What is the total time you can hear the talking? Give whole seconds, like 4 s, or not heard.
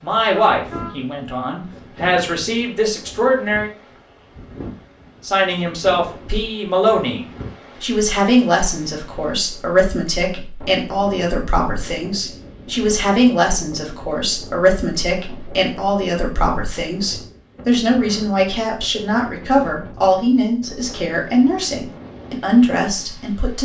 22 s.